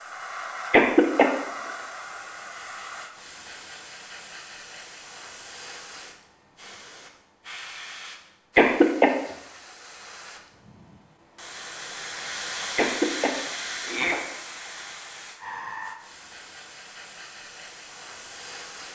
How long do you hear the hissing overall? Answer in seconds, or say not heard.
19 s.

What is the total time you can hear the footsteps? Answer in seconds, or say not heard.
not heard.